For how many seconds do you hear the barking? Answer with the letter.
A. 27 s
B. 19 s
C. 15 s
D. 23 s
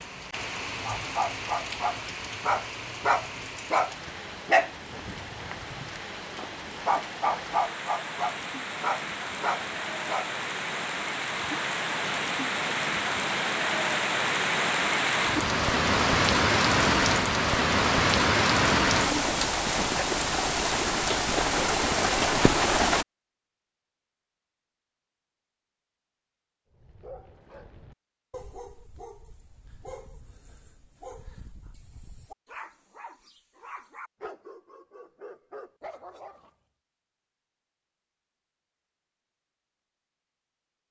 B.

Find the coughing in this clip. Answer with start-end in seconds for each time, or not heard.
not heard.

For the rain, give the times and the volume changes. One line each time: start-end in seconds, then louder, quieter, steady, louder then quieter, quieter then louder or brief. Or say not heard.
0.0-23.1 louder.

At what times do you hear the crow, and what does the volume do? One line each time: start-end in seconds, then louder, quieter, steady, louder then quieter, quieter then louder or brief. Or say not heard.
not heard.